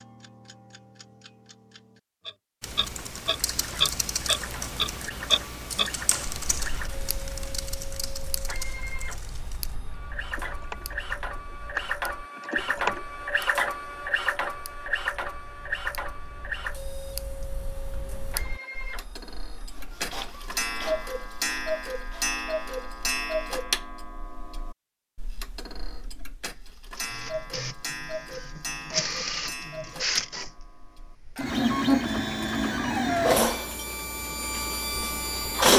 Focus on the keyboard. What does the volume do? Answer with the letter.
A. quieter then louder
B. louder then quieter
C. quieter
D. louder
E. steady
A.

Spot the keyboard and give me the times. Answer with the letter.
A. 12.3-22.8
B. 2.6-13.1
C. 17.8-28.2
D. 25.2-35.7
B.